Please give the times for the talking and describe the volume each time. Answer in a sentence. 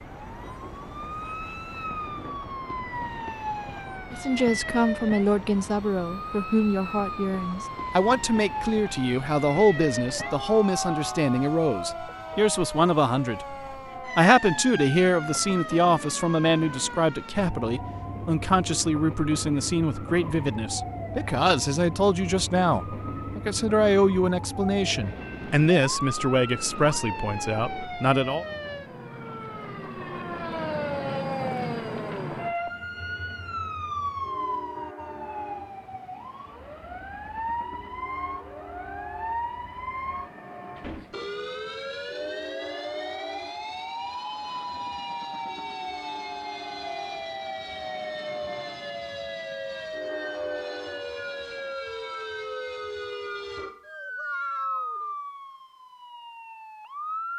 The talking can be heard from 4.1 to 28.4 s, at a steady volume.